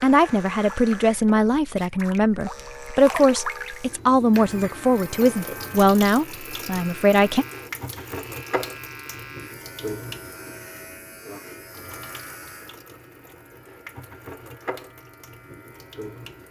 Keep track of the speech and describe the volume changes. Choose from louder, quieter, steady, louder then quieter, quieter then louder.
steady.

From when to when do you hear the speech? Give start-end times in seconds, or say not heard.
0.0-7.5.